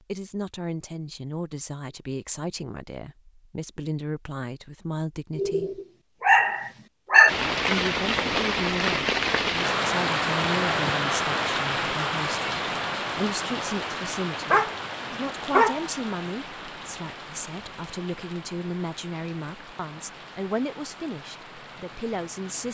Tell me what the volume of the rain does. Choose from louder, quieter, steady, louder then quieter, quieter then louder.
quieter.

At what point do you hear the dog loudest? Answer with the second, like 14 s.
7 s.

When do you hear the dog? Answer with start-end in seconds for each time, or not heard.
5.3-7.3, 14.5-15.8.